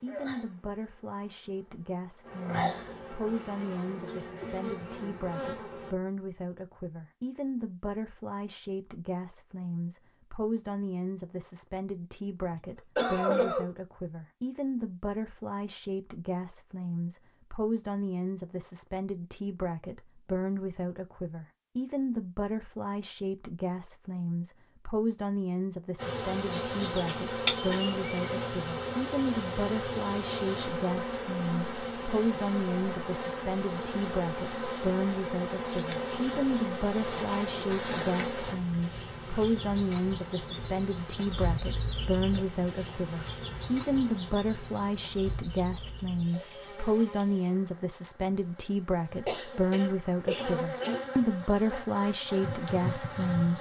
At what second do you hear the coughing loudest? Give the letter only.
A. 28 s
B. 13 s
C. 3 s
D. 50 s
B.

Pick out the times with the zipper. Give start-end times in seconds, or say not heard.
not heard.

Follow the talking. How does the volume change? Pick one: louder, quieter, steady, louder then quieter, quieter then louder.
louder.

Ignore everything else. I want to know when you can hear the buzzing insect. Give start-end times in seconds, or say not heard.
0.0-5.9, 25.9-53.5.